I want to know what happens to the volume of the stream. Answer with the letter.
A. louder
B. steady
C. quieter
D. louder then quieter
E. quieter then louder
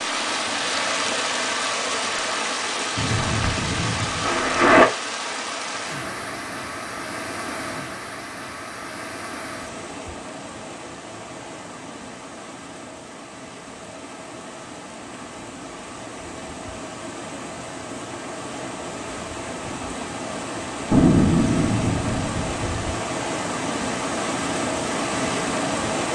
E.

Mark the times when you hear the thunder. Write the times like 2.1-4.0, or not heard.
3.0-4.8, 20.9-22.9.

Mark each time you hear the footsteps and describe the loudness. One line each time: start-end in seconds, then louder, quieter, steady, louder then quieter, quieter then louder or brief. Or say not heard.
not heard.